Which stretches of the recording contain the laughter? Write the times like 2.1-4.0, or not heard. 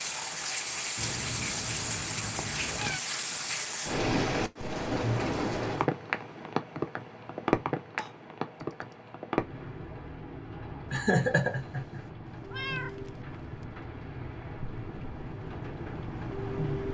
10.9-12.0.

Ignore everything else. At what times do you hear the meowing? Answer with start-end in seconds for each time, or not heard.
0.9-3.0, 8.0-9.1, 12.2-13.7.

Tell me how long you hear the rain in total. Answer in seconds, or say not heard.
17 s.